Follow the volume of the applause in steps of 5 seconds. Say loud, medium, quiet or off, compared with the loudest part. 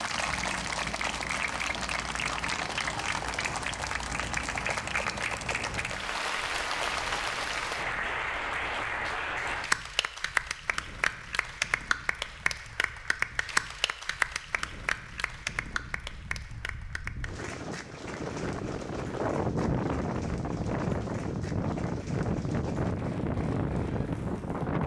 loud, loud, loud, medium, quiet.